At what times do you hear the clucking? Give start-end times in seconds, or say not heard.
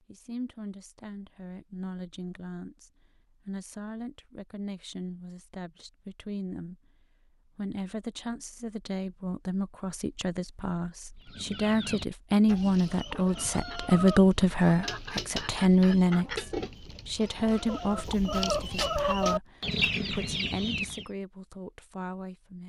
11.2-21.1.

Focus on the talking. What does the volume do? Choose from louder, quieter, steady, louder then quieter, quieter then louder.
louder then quieter.